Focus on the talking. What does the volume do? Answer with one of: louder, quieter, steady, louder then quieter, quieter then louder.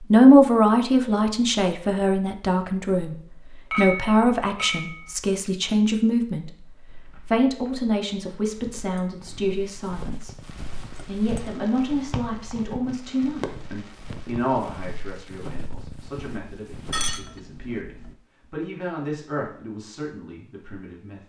quieter.